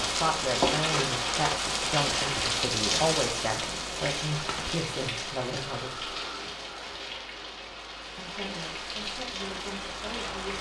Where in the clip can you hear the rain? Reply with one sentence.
You can hear the rain from 0.0 to 10.5 s.